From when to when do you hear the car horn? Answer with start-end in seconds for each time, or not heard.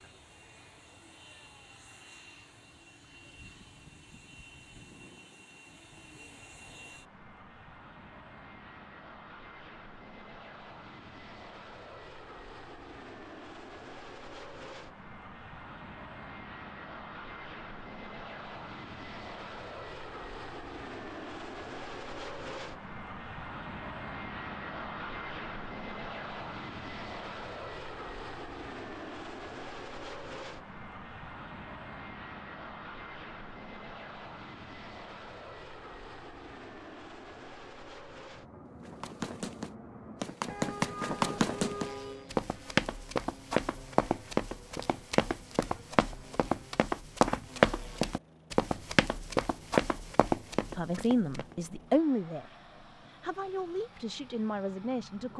40.5-42.3.